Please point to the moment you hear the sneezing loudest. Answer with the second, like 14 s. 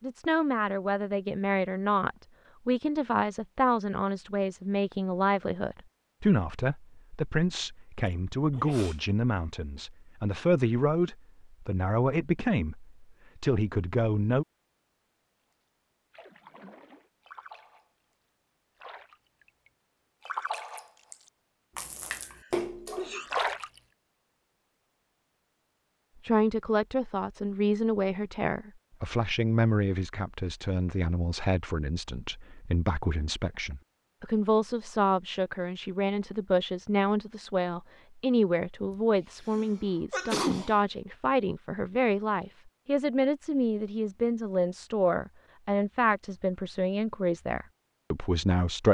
40 s.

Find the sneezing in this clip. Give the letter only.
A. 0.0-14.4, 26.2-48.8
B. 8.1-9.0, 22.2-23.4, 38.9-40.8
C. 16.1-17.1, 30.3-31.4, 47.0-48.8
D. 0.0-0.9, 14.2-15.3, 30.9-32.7
B.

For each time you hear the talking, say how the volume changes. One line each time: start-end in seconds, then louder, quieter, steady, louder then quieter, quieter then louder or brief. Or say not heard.
0.0-14.4 steady
26.2-48.8 steady.